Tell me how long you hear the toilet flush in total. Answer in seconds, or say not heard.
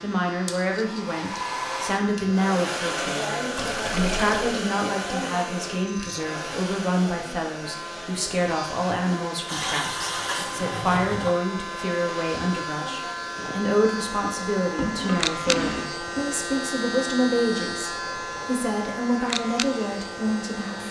4 s.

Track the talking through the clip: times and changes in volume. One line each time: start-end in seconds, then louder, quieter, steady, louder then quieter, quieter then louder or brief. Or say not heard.
0.0-20.8 steady.